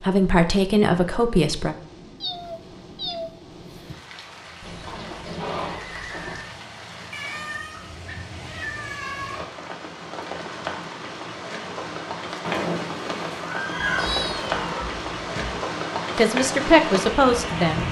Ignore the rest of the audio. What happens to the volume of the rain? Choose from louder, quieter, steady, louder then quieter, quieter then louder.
louder.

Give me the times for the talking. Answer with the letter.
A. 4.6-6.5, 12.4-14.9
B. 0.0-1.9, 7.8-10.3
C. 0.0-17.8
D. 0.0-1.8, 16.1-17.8
D.